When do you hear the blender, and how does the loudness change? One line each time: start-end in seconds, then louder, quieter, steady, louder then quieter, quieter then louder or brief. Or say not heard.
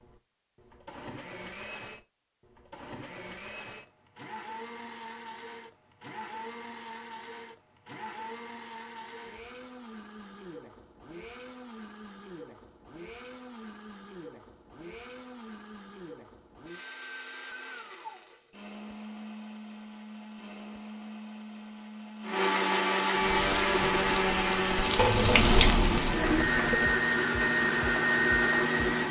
0.0-29.0 louder.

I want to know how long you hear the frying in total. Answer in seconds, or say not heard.
4 s.